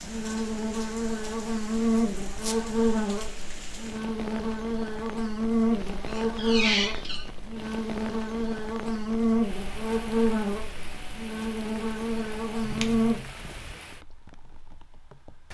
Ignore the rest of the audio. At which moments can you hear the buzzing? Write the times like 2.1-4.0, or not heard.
0.0-13.2.